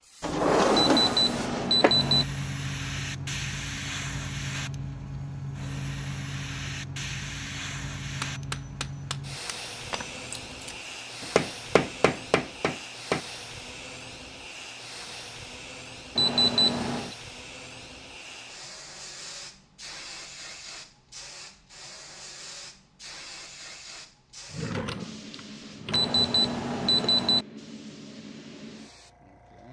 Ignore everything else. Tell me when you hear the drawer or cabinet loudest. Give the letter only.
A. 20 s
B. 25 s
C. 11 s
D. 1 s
D.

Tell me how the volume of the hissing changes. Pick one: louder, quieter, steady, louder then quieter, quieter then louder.
quieter.